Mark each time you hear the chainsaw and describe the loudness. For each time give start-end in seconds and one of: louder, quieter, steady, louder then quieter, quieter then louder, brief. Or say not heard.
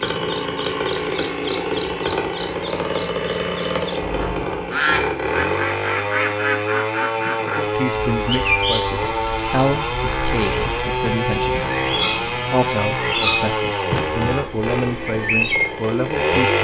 0.0-16.6 steady.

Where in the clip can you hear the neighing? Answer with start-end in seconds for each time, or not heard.
4.0-4.7.